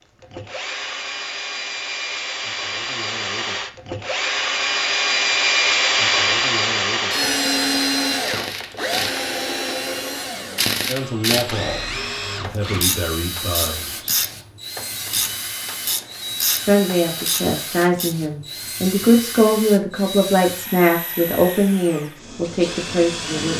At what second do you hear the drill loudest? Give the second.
6 s.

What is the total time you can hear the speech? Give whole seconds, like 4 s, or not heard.
10 s.